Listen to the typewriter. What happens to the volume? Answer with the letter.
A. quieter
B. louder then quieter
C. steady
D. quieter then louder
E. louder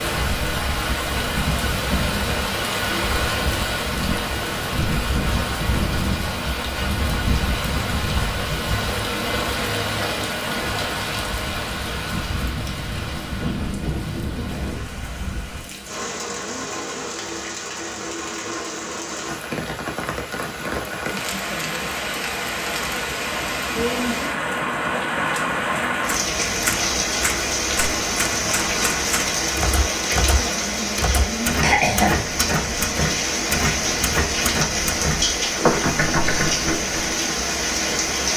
E.